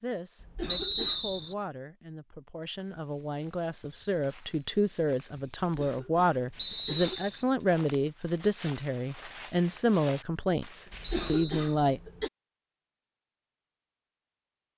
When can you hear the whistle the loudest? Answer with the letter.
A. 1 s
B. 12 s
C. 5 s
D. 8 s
A.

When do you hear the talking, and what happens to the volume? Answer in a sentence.
The talking can be heard from 0.0 to 12.0 s, getting louder.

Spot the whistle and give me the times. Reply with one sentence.
You can hear the whistle from 0.7 to 1.6 s, from 6.5 to 7.5 s and from 11.2 to 11.7 s.